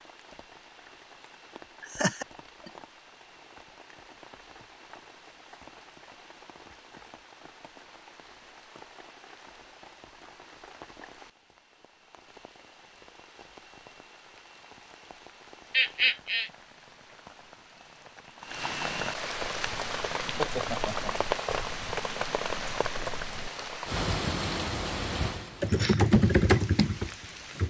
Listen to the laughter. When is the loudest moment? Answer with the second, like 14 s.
16 s.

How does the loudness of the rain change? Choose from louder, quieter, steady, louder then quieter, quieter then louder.
louder.